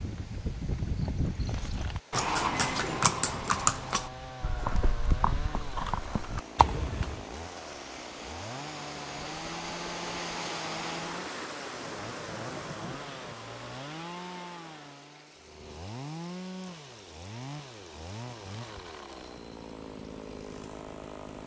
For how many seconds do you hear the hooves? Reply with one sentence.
The hooves can be heard for 7 seconds in total.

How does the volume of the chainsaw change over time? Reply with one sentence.
The volume of the chainsaw stays about the same.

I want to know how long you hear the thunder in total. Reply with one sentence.
The thunder can be heard for 2 seconds in total.